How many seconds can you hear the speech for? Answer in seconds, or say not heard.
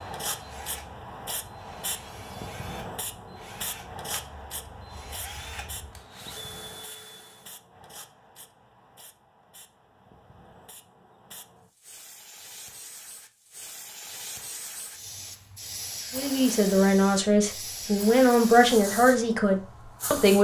4 s.